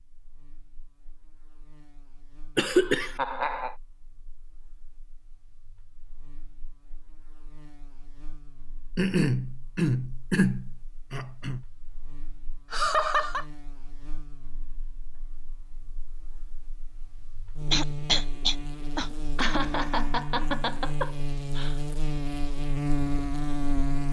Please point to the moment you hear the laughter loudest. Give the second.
13 s.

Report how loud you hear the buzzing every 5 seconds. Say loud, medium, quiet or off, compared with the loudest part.
quiet, quiet, quiet, medium, loud.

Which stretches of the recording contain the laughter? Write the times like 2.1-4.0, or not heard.
2.7-3.8, 12.7-13.4, 19.4-21.8.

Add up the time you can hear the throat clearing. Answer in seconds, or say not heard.
5 s.